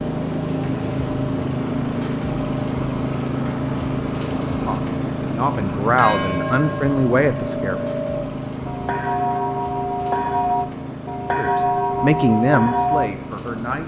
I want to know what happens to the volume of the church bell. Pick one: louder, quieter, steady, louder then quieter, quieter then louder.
louder.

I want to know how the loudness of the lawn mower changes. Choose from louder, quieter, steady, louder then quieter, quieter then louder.
quieter.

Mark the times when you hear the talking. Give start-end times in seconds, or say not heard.
4.7-7.8, 11.3-13.8.